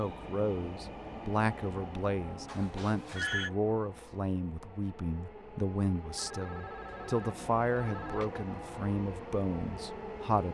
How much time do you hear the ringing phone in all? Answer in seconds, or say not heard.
3 s.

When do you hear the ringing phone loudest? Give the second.
3 s.